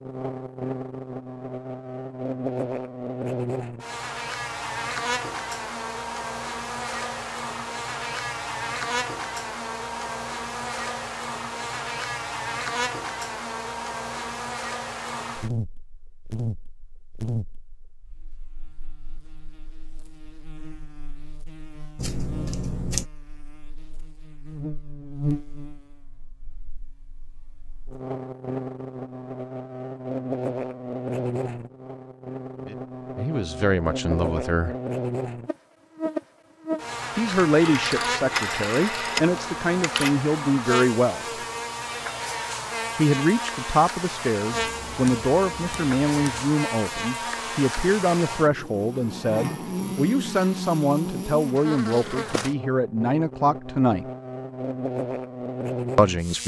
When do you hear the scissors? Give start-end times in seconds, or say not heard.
21.9-23.1, 44.5-46.5.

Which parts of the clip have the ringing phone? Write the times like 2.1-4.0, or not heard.
37.5-40.1.